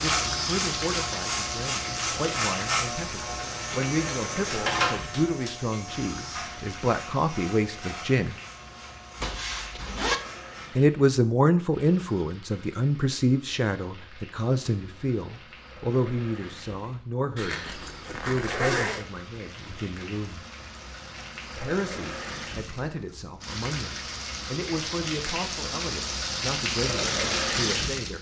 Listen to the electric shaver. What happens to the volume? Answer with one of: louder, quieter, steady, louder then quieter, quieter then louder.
quieter.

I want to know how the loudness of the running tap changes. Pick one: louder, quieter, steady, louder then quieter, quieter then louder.
quieter then louder.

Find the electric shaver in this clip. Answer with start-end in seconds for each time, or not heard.
0.0-10.8.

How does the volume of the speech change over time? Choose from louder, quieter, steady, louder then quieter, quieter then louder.
louder then quieter.